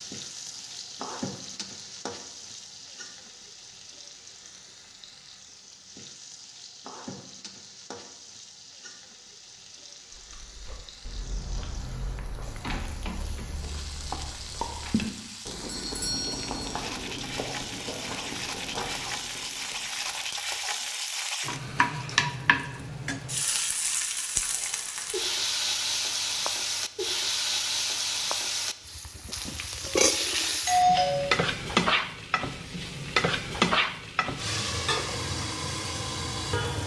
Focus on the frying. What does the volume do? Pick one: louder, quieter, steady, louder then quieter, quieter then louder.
louder.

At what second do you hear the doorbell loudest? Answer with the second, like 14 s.
31 s.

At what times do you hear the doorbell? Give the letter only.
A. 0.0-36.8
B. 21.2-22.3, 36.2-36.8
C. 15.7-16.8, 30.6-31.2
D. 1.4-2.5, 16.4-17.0
C.